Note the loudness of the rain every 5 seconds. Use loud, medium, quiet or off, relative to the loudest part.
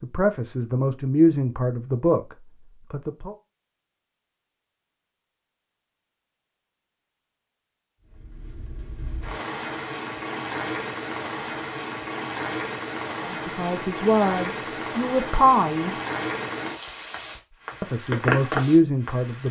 off, medium, loud, loud.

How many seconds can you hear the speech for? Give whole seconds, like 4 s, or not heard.
8 s.